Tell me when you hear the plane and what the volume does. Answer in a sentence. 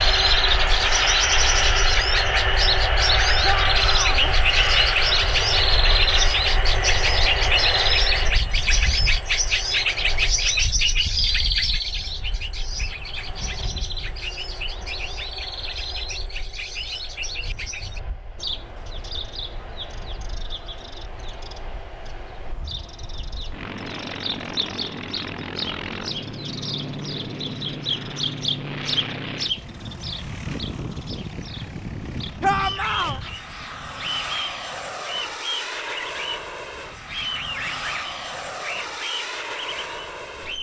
You can hear the plane from 0.0 to 40.5 s, getting quieter then louder.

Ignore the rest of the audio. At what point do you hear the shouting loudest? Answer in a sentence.
The volume of the shouting peaks at 33 seconds.